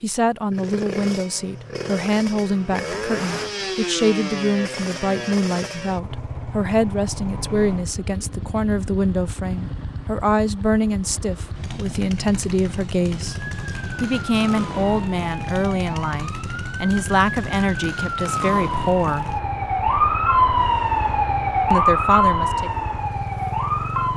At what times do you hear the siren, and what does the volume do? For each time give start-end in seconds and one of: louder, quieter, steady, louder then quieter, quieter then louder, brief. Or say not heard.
13.2-24.1 louder.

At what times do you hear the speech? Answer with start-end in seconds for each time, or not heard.
0.0-13.3, 14.0-19.3, 21.7-22.7.